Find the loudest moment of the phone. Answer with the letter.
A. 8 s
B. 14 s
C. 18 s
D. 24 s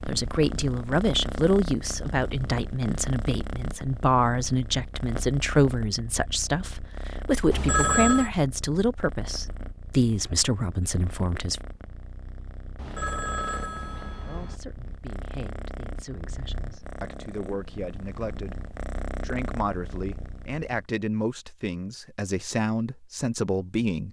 A.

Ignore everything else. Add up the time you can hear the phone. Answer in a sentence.
The phone can be heard for 3 seconds in total.